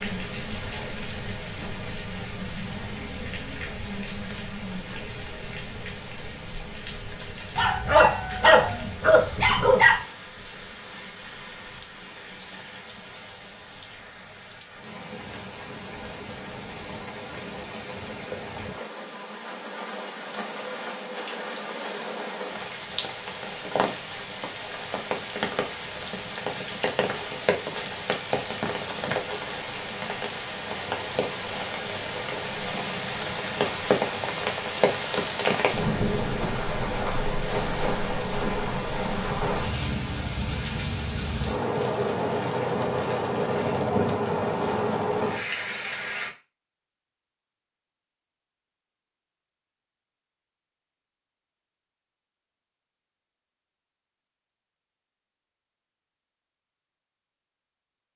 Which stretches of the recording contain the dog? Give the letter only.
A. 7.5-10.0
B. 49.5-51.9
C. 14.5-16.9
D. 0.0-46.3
A.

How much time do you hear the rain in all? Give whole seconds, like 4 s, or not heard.
46 s.